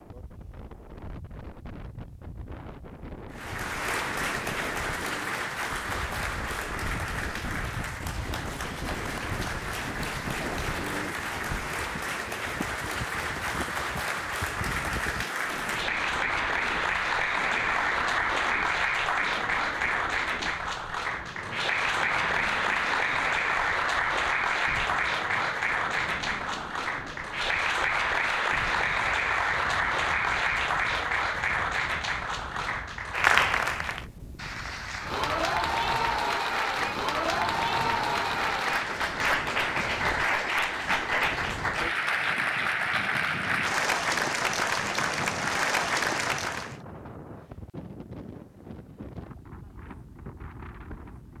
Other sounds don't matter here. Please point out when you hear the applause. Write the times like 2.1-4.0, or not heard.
3.3-46.8.